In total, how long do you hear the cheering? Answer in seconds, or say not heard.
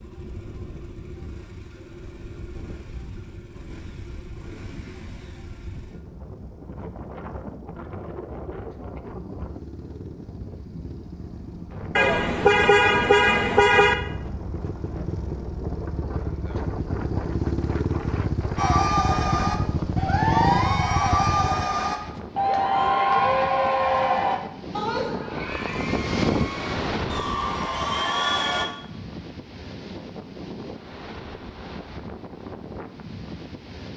10 s.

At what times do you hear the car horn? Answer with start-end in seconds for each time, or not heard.
11.9-13.9.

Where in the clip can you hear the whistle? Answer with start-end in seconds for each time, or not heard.
not heard.